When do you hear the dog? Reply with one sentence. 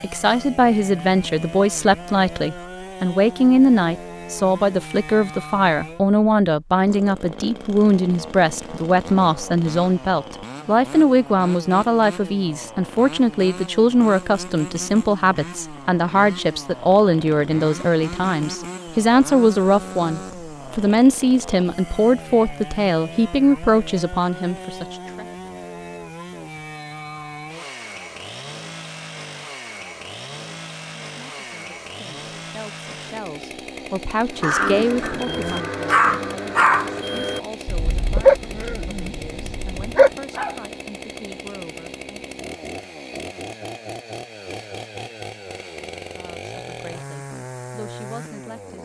The dog can be heard from 34.3 to 40.5 s.